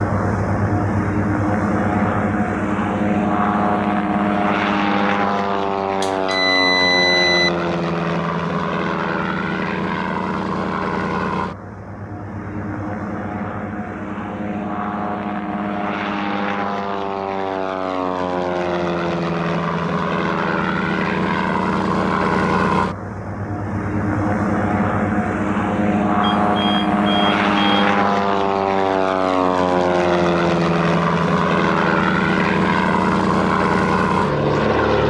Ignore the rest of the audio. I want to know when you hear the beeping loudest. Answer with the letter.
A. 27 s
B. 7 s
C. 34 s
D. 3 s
B.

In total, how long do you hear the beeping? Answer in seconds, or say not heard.
3 s.